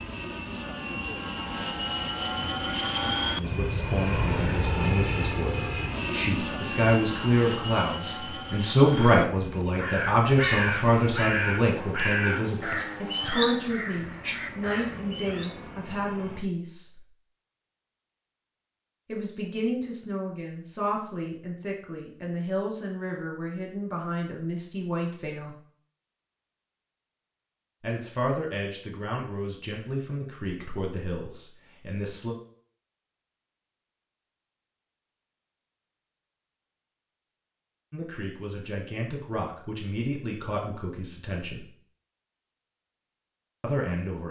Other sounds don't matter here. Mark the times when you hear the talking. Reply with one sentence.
You can hear the talking from 3.3 to 17.1 s, from 19.1 to 25.6 s, from 27.8 to 32.4 s, from 37.9 to 41.6 s and from 43.6 to 44.2 s.